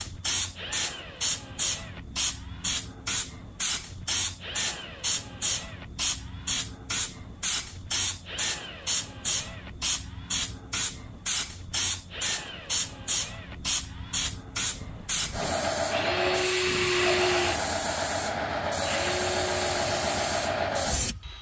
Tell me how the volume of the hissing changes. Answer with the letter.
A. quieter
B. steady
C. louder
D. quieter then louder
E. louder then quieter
B.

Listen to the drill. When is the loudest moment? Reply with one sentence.
The loudest moment of the drill is at 17 seconds.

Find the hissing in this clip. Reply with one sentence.
The hissing can be heard from 0.0 to 21.3 s.